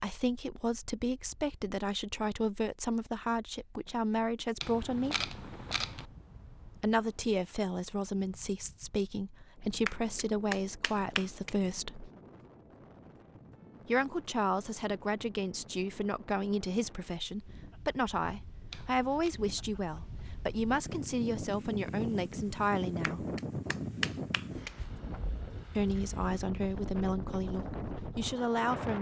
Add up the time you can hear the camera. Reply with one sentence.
The camera can be heard for 2 seconds in total.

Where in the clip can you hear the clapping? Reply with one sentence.
You can hear the clapping from 9.8 to 11.5 s and from 23.0 to 24.7 s.